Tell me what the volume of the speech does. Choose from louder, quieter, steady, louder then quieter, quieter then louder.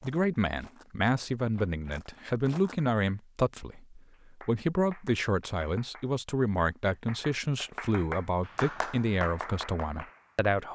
steady.